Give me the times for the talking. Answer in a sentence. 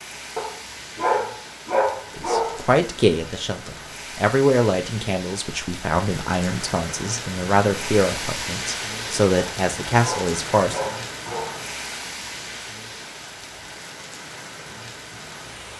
The talking can be heard from 2.1 to 10.8 s.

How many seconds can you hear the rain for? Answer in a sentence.
The rain can be heard for 16 seconds in total.